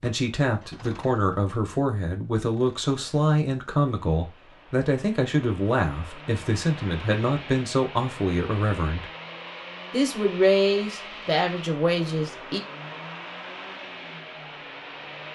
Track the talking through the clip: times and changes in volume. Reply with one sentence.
The talking can be heard from 0.0 to 9.1 s, at a steady volume; and briefly from 9.9 to 12.6 s.